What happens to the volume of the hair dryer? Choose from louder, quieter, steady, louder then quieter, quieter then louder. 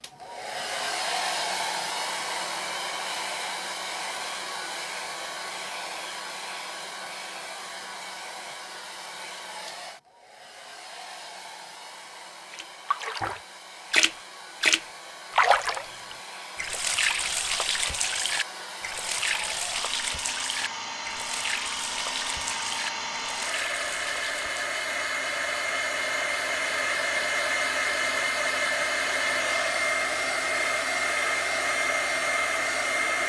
quieter then louder.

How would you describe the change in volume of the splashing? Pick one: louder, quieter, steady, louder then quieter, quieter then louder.
quieter.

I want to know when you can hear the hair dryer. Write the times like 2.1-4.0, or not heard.
0.0-33.2.